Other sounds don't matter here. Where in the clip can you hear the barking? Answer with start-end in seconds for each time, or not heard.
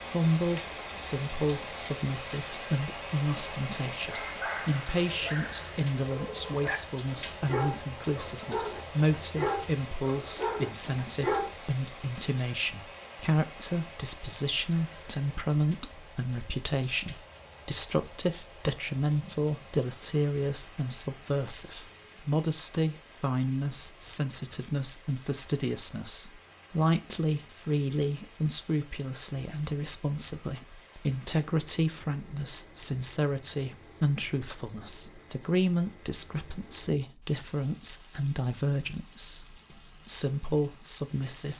4.0-11.6.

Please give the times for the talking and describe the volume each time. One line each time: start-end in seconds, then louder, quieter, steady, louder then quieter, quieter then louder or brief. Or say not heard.
0.1-41.5 steady.